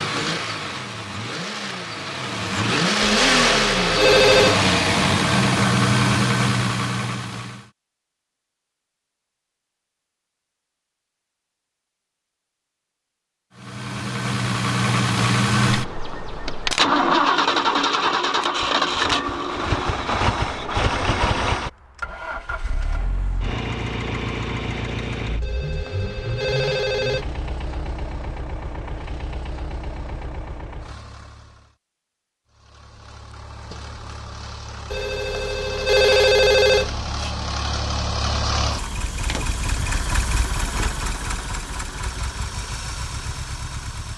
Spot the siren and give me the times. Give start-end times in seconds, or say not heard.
not heard.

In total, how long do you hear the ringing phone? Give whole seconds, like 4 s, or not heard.
6 s.